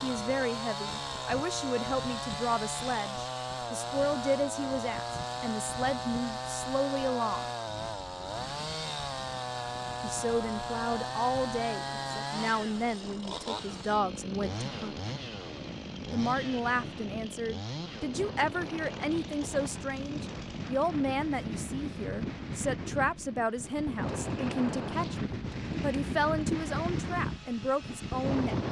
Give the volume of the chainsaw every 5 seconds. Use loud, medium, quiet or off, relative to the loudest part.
loud, loud, loud, medium, medium, quiet.